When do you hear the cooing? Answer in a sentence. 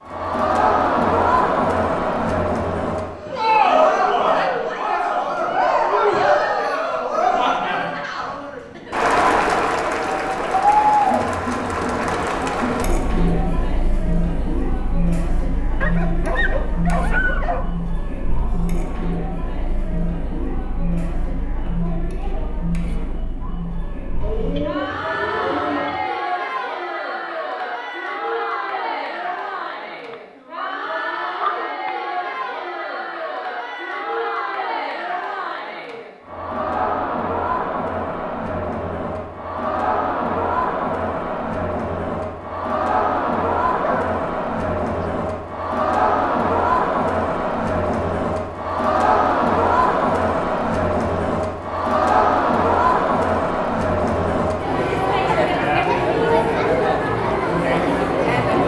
The cooing can be heard from 24.2 to 26.0 s.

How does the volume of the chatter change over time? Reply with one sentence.
The volume of the chatter goes down, then up.